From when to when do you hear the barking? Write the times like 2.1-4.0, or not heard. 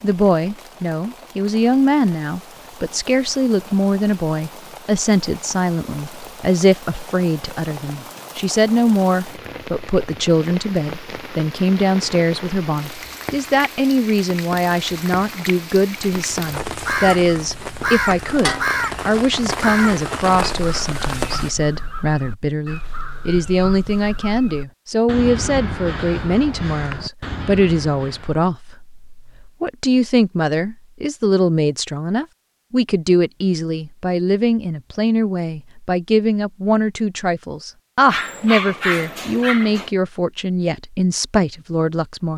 38.0-39.9.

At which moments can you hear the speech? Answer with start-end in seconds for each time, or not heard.
0.0-42.3.